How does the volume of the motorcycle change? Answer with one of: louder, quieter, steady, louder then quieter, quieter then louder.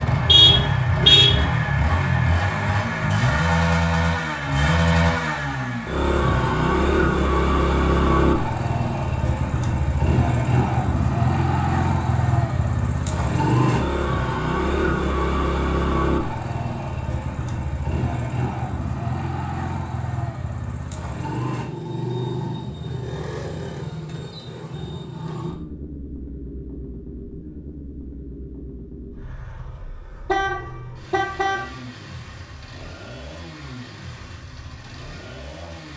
quieter.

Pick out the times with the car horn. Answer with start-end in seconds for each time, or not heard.
0.2-1.4, 30.2-31.6.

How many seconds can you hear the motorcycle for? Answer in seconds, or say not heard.
36 s.